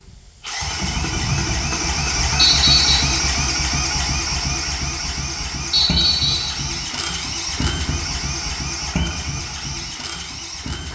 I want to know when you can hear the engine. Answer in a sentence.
You can hear the engine from 0.0 to 10.9 s.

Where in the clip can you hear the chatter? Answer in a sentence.
You can't hear the chatter here.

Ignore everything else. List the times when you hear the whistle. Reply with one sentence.
You can hear the whistle from 2.4 to 3.0 s and from 5.7 to 6.5 s.